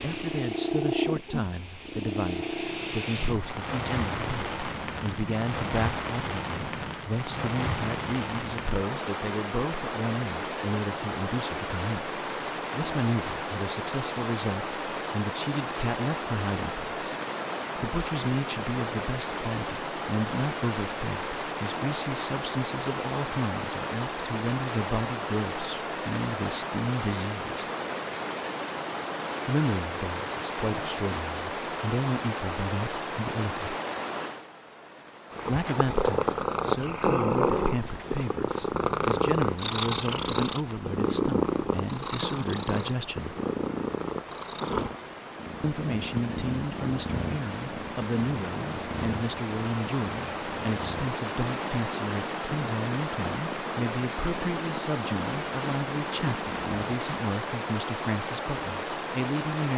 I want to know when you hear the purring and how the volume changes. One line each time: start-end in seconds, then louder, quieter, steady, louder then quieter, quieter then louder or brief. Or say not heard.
0.0-8.2 quieter
35.3-56.8 quieter.